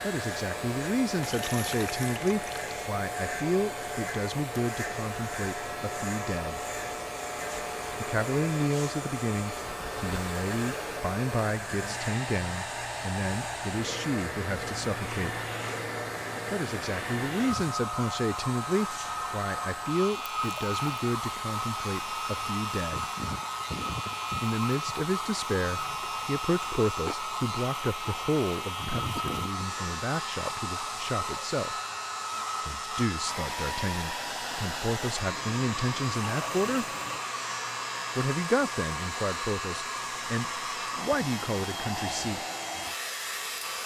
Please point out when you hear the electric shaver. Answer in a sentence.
You can hear the electric shaver from 0.0 to 43.8 s.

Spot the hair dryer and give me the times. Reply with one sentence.
You can hear the hair dryer from 0.0 to 43.8 s.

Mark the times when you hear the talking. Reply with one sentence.
The talking can be heard from 0.0 to 6.6 s, from 8.0 to 15.3 s, from 16.5 to 23.1 s, from 24.4 to 31.8 s, from 32.6 to 36.9 s and from 38.1 to 42.4 s.